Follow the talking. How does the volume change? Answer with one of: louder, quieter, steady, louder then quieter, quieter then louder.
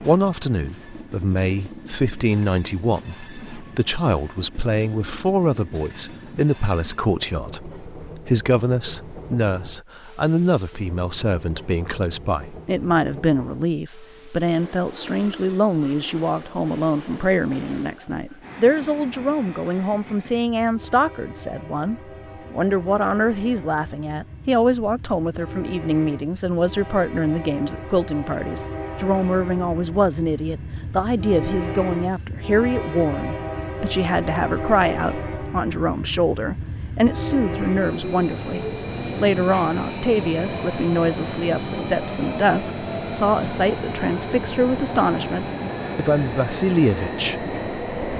steady.